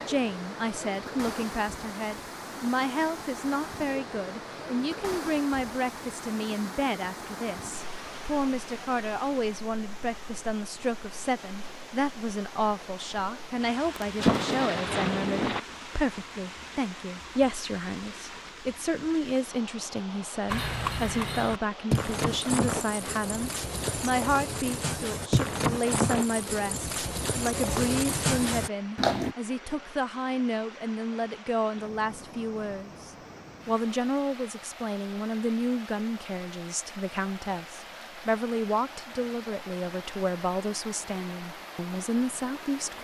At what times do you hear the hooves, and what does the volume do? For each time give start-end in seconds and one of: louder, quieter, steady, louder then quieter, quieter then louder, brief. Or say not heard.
20.4-29.4 steady.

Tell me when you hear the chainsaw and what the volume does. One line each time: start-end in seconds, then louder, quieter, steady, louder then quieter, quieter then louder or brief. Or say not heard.
not heard.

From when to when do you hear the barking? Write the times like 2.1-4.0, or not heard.
not heard.